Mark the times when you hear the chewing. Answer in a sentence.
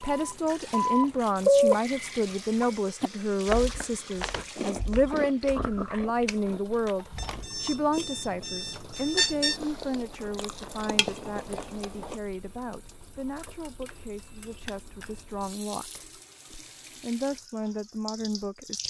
You can hear the chewing from 3.0 to 12.2 s.